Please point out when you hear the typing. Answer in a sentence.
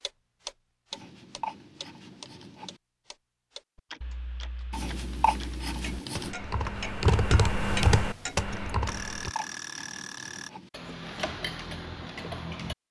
The typing can be heard from 3.8 to 9.3 s.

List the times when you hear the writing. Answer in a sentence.
You can hear the writing from 0.9 to 2.8 s, from 4.7 to 6.3 s and from 9.1 to 10.7 s.